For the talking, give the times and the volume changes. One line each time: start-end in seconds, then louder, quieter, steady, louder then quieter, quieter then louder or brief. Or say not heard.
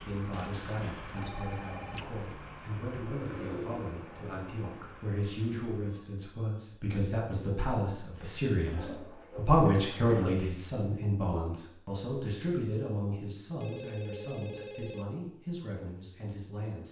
0.0-16.8 louder then quieter.